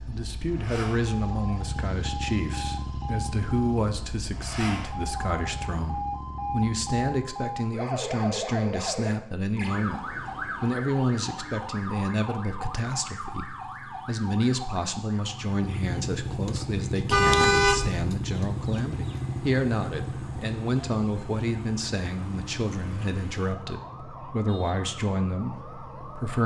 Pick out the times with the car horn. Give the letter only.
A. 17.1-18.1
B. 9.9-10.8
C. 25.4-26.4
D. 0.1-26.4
A.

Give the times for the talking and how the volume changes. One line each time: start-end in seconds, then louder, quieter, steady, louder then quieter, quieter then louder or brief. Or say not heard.
0.1-26.4 steady.